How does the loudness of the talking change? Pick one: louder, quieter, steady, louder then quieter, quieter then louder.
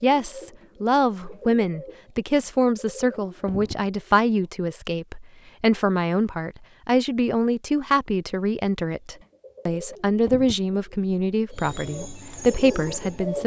steady.